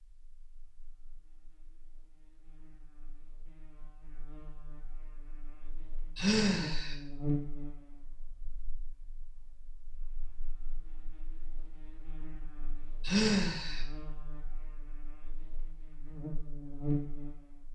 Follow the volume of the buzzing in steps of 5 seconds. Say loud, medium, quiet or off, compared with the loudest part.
quiet, loud, quiet, loud.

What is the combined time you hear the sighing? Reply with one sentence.
You can hear the sighing for 2 seconds altogether.